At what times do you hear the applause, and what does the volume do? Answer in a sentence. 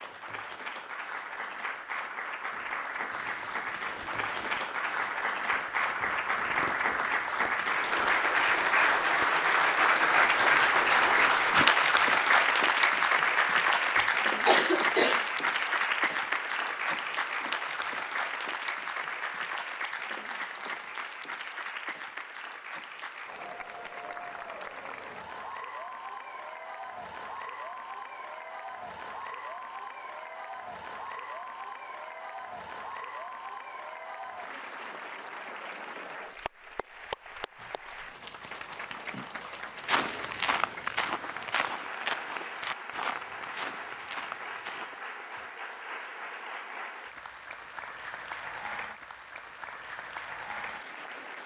The applause can be heard from 0.0 to 51.4 s, getting quieter.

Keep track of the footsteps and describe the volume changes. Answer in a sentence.
The volume of the footsteps goes down.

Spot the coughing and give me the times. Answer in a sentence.
You can hear the coughing from 13.9 to 15.2 s.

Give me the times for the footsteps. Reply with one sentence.
You can hear the footsteps from 39.9 to 45.0 s.